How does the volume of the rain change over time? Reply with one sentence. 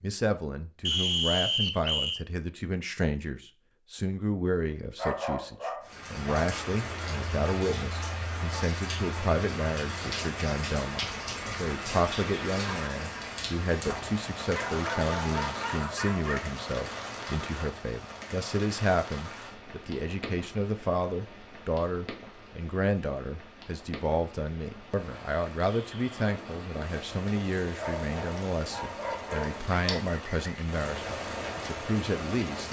The loudness of the rain goes down, then up.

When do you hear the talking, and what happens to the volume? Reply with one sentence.
You can hear the talking from 0.0 to 32.6 s, at a steady volume.